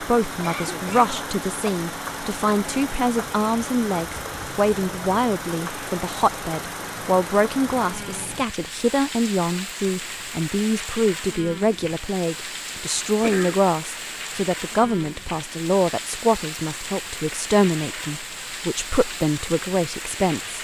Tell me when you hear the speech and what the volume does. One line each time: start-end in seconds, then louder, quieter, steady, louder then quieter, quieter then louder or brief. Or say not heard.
0.0-20.6 steady.